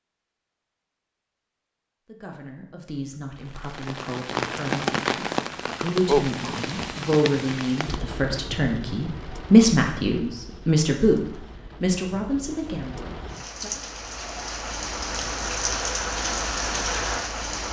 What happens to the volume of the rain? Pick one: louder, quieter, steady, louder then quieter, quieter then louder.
quieter then louder.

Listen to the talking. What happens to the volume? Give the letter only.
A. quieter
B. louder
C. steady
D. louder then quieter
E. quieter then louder
D.